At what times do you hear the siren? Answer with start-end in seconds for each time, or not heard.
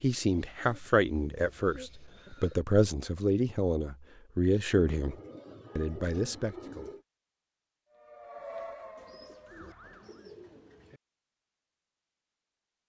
7.9-10.3.